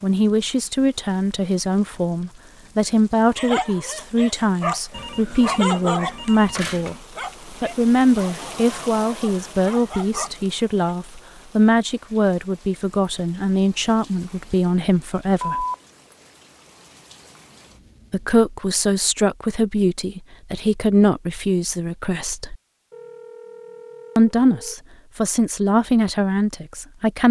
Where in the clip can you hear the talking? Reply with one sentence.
The talking can be heard from 0.0 to 7.0 s, from 7.6 to 15.7 s, from 18.1 to 22.6 s and from 24.1 to 27.2 s.